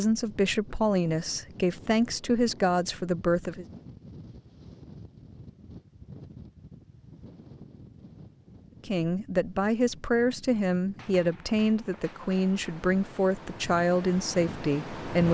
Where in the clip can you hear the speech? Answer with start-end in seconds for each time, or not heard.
0.0-3.6, 8.8-15.2.